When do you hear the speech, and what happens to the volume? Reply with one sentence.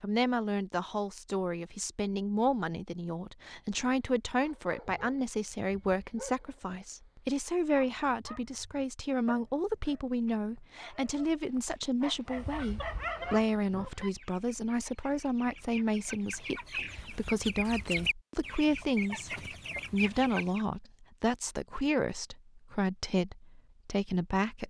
The speech can be heard from 0.0 to 24.6 s, at a steady volume.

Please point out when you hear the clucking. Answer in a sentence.
You can hear the clucking from 12.3 to 20.6 s.